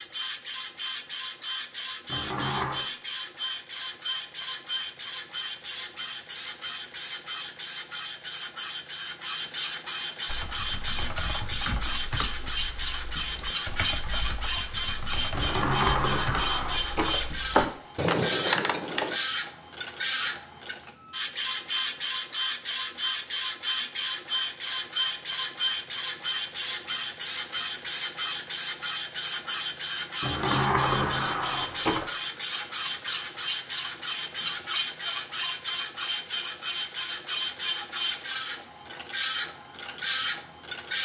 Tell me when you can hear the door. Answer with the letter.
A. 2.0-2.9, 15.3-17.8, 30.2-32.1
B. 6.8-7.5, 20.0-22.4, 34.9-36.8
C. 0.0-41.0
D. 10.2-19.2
A.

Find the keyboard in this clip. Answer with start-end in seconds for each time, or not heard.
10.2-19.2.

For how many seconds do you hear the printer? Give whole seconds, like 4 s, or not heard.
41 s.